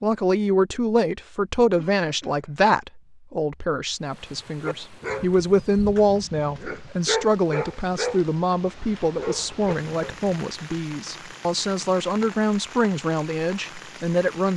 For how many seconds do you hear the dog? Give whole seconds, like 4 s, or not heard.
6 s.